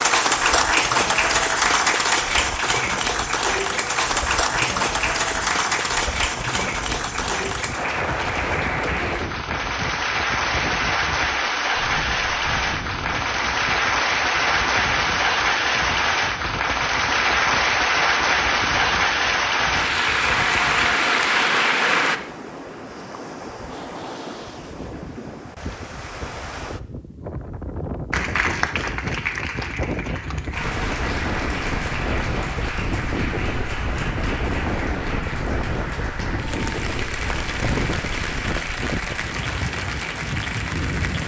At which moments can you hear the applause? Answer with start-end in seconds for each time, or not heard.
0.0-22.2, 28.1-41.2.